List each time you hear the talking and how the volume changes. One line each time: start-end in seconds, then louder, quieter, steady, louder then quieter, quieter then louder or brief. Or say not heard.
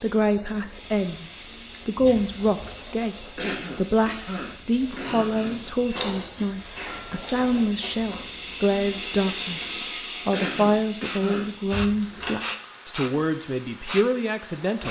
0.0-14.8 steady.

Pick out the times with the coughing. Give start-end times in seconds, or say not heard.
3.4-5.7, 10.3-11.5.